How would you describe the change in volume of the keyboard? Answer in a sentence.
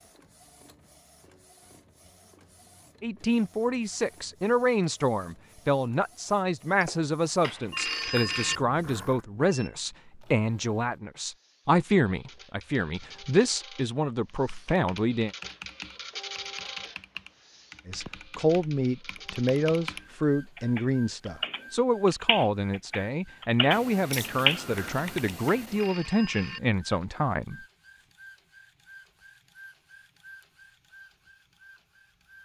The volume of the keyboard goes up.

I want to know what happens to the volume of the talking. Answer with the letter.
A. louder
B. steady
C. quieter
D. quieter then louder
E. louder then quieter
B.